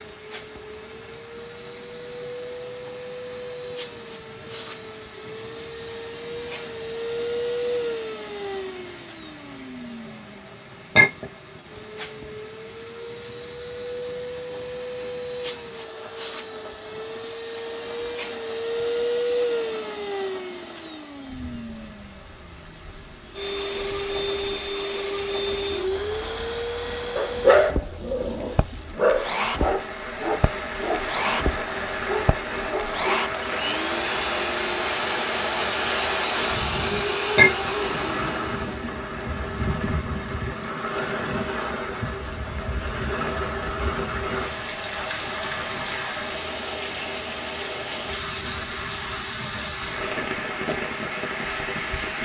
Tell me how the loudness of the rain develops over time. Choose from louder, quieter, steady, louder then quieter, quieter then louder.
louder.